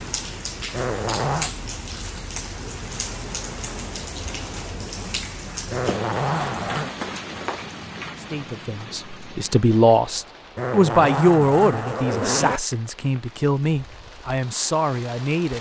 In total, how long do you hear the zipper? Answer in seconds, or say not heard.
4 s.